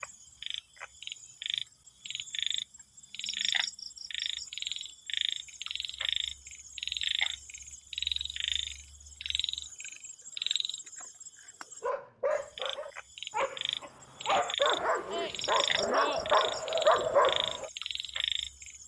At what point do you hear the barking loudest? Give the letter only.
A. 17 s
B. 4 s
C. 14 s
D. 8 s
A.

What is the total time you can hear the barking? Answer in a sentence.
You can hear the barking for 6 seconds altogether.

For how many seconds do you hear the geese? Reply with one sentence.
The geese can't be heard in this clip.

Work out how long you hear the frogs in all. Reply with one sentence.
You can hear the frogs for 19 seconds altogether.